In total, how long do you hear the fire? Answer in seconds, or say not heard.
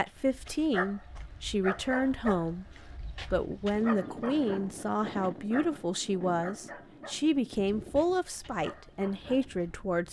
not heard.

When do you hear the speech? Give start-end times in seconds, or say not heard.
0.0-2.6, 3.3-10.0.